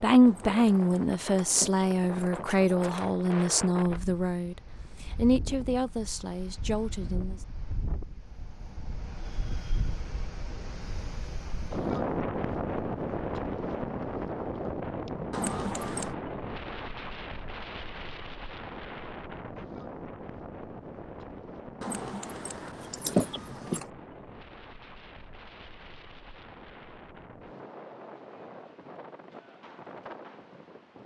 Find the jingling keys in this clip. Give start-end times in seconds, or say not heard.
0.2-3.0, 15.3-16.1, 21.8-23.9.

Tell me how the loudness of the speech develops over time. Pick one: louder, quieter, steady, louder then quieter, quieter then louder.
quieter.